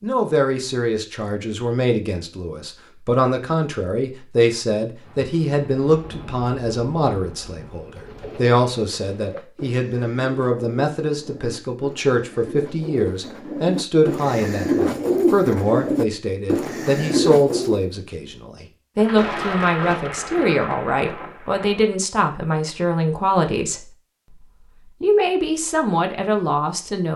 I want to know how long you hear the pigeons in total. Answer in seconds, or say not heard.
10 s.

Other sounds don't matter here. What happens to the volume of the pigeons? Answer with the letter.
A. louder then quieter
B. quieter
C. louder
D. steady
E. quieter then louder
C.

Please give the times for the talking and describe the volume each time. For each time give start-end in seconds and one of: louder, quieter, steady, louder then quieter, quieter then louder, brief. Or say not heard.
0.0-27.1 steady.